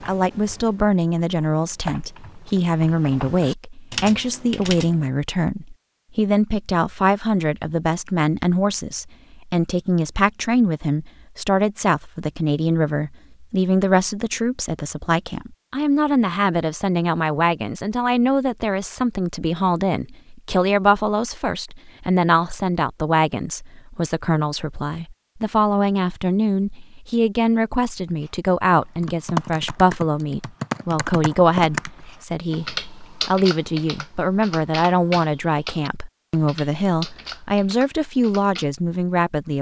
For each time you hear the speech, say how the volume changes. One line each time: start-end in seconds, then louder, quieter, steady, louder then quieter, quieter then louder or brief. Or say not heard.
0.0-39.5 steady.